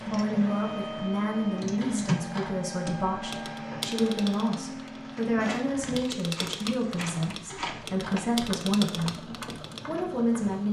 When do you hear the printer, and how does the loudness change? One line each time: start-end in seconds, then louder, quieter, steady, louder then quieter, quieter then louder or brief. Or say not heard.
0.0-10.6 quieter.